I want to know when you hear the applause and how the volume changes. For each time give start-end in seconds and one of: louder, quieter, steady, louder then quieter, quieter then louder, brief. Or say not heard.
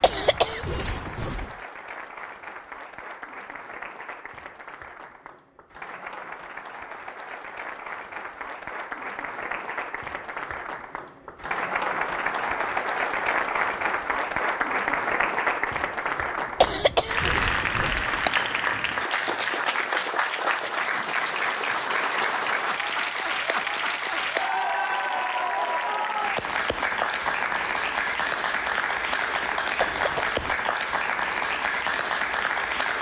0.0-32.9 louder.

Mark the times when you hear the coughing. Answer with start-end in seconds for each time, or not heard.
0.0-1.5, 16.6-18.3, 29.8-30.6.